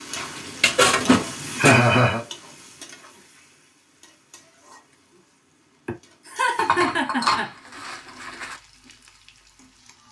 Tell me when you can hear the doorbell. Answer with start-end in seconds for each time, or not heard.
not heard.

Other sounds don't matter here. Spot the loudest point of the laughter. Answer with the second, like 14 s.
2 s.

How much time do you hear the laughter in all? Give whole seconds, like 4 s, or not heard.
2 s.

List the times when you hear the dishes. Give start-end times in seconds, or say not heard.
0.1-1.8, 6.5-8.6.